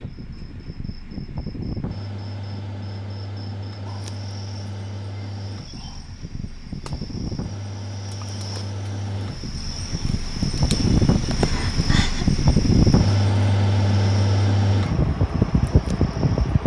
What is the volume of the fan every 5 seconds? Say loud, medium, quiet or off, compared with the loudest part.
quiet, quiet, loud, loud.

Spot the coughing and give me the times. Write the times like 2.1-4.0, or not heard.
11.2-12.2.